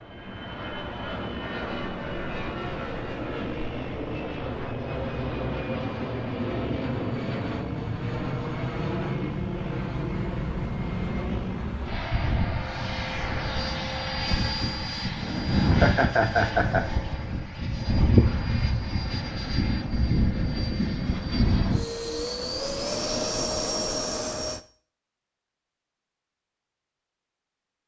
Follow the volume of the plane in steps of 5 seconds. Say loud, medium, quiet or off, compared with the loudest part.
medium, loud, loud, loud, loud, off.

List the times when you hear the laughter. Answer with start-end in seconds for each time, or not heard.
15.6-16.9.